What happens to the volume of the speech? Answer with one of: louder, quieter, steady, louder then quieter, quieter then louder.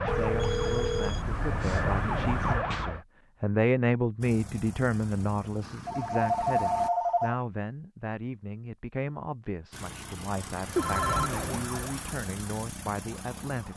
louder then quieter.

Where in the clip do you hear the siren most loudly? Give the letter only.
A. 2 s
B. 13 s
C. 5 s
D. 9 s
A.